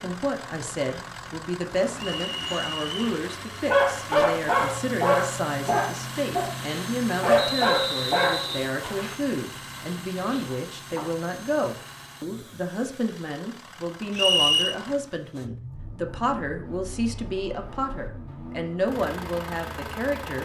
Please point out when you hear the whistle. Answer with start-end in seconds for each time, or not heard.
1.9-3.0, 7.3-8.7, 14.2-14.8.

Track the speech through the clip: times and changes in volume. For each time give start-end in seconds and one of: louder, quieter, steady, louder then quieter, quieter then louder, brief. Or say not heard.
0.0-20.4 steady.